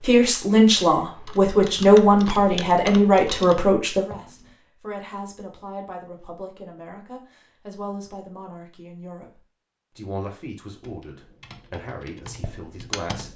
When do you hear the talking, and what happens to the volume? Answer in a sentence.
You can hear the talking from 0.0 to 13.3 s, getting quieter.